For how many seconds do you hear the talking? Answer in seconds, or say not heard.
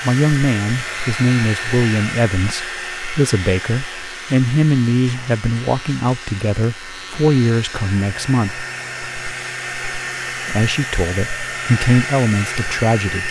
11 s.